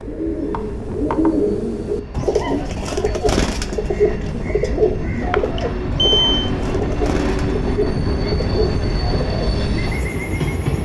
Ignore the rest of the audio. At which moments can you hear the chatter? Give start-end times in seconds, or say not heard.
not heard.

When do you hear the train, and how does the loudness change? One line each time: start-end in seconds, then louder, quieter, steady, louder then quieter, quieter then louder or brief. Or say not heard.
0.0-10.8 louder.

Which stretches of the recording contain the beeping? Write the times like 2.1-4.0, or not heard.
5.3-6.5.